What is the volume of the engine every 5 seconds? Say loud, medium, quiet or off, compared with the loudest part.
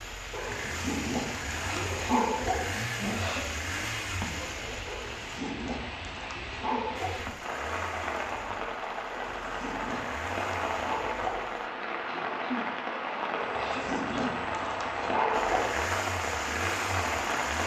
loud, medium, medium, loud.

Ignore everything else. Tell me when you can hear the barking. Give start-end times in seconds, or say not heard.
0.3-2.7, 4.8-7.2, 9.1-11.4, 13.3-15.8.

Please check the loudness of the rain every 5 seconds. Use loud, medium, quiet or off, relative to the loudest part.
medium, medium, loud, loud.